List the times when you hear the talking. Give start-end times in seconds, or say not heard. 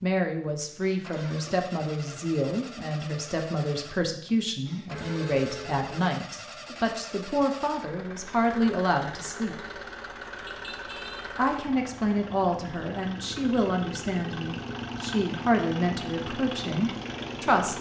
0.0-9.6, 11.3-17.7.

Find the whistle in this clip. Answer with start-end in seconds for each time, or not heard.
not heard.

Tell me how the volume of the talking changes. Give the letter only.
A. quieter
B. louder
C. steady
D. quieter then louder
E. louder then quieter
C.